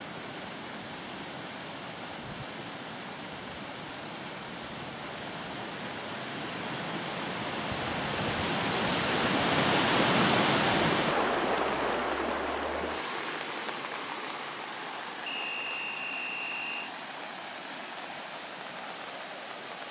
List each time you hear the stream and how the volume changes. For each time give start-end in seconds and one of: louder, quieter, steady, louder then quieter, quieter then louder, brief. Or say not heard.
0.0-19.8 louder then quieter.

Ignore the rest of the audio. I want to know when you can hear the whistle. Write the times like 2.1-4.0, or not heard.
15.2-16.9.